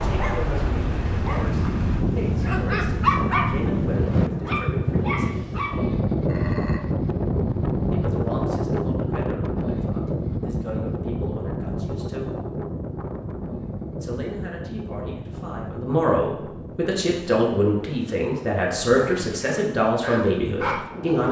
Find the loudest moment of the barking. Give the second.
3 s.